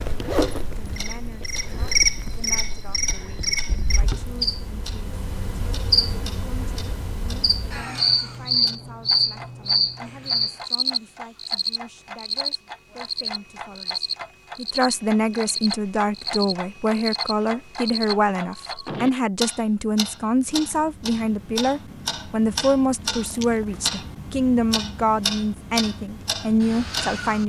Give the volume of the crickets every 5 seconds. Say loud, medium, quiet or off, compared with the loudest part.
loud, loud, loud, medium, off, off.